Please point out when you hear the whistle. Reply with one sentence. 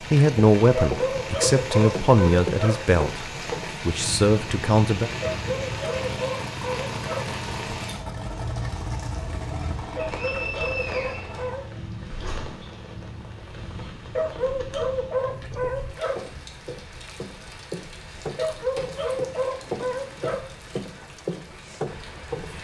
You can hear the whistle from 10.2 to 11.9 s.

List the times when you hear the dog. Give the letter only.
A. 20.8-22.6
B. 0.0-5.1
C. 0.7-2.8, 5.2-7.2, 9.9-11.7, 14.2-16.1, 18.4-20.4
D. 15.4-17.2
C.